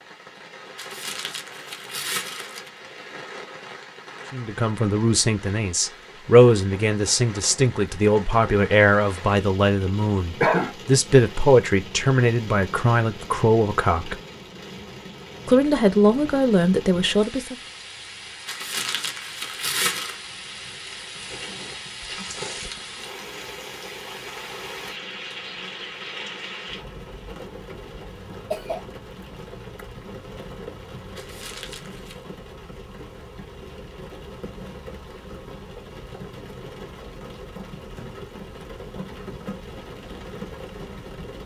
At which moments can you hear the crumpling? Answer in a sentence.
The crumpling can be heard from 0.8 to 2.7 s, from 18.4 to 20.1 s and from 31.1 to 32.2 s.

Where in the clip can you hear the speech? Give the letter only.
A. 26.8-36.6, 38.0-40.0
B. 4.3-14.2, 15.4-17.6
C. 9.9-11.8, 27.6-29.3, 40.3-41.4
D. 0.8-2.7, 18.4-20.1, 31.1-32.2
B.